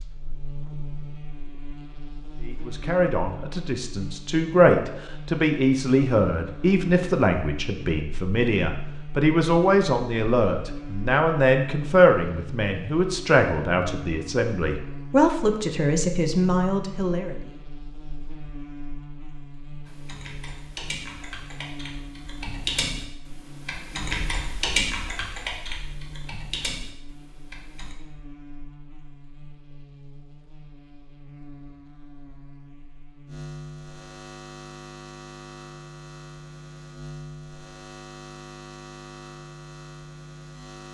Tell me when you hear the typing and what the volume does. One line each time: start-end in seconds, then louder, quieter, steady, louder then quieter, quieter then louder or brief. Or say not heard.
19.9-27.9 louder then quieter.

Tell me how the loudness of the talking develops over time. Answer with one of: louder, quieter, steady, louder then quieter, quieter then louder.
steady.